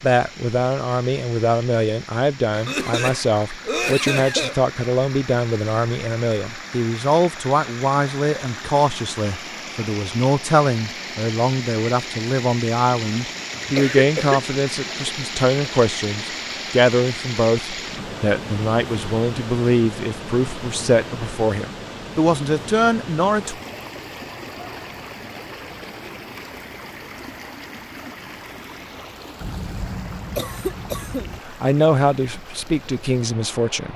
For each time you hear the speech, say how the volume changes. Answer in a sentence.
The speech can be heard from 0.0 to 23.6 s, at a steady volume; and briefly from 31.4 to 33.9 s.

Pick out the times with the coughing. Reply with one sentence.
You can hear the coughing from 2.6 to 4.5 s, from 13.5 to 14.4 s and from 29.4 to 31.4 s.